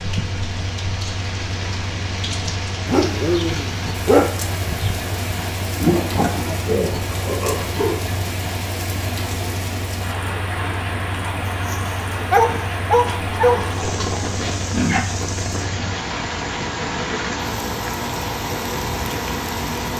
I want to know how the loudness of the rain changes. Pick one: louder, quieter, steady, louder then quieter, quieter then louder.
steady.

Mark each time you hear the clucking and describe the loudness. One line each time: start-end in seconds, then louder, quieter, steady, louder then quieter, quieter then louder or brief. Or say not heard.
not heard.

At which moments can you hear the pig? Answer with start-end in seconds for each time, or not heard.
5.8-8.0, 13.1-15.0.